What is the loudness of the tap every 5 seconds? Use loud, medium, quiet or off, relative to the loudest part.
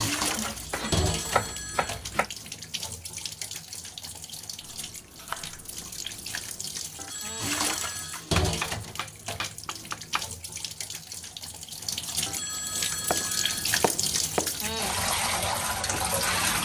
medium, medium, medium, loud.